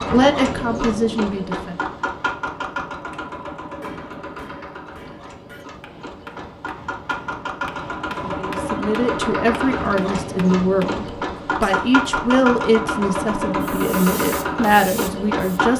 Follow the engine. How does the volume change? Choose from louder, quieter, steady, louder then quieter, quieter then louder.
quieter then louder.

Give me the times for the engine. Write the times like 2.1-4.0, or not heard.
0.0-15.7.